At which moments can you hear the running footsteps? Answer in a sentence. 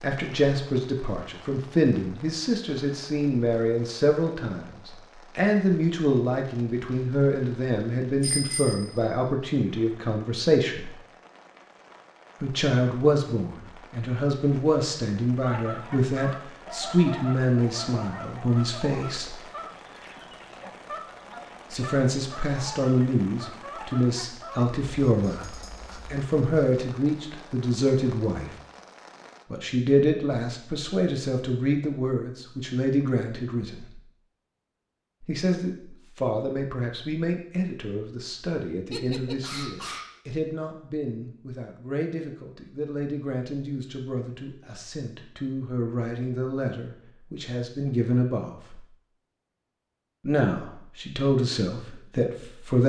The running footsteps can't be heard in this clip.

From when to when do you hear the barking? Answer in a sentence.
The barking can be heard from 38.9 to 40.2 s.